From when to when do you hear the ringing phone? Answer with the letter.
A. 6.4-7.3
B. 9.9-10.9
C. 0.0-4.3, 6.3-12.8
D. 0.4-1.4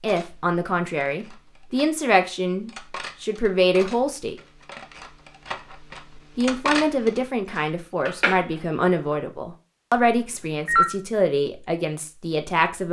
B.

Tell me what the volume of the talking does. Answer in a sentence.
The volume of the talking stays about the same.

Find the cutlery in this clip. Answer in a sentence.
You can hear the cutlery from 0.0 to 9.2 s.